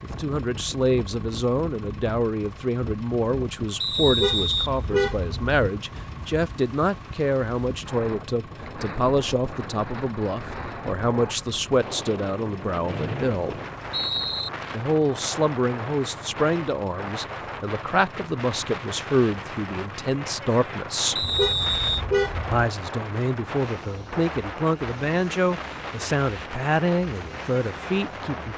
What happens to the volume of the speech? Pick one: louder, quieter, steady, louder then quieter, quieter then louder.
steady.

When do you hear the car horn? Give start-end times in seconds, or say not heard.
4.0-5.6, 21.2-22.6.